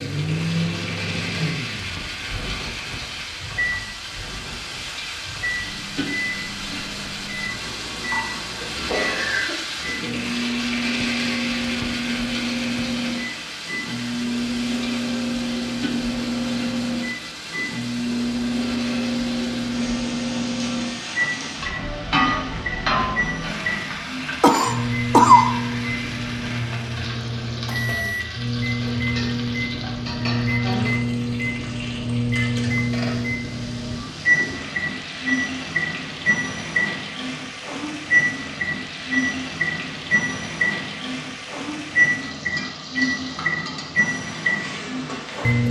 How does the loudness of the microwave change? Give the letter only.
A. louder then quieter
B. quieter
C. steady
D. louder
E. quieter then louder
D.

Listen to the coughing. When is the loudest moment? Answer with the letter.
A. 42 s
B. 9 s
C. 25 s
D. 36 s
C.